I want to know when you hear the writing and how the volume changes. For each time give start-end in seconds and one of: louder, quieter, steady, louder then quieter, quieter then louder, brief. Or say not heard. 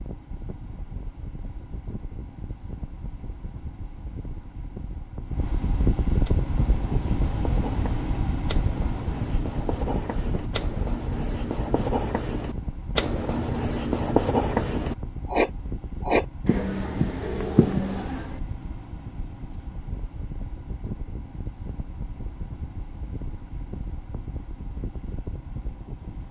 6.2-18.4 louder.